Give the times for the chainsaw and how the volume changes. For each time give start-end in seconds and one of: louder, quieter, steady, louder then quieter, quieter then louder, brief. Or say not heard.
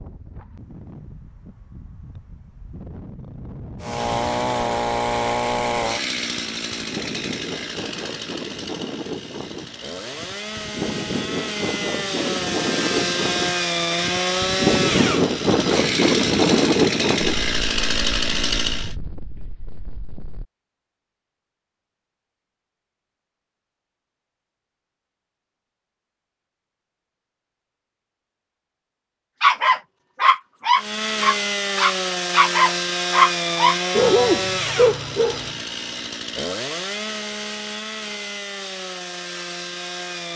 3.8-18.9 quieter then louder
30.8-40.3 quieter.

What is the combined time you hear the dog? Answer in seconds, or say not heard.
6 s.